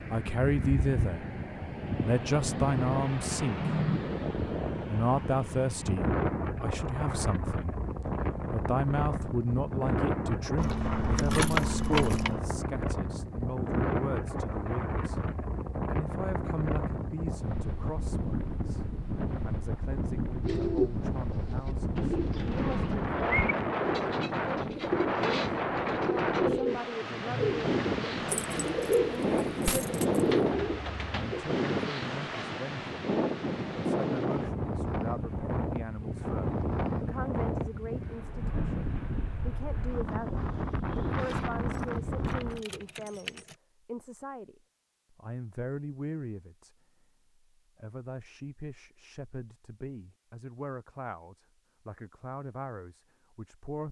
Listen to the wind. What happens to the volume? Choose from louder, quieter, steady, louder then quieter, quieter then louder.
steady.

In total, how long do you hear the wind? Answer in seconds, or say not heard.
43 s.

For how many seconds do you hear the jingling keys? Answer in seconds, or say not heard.
6 s.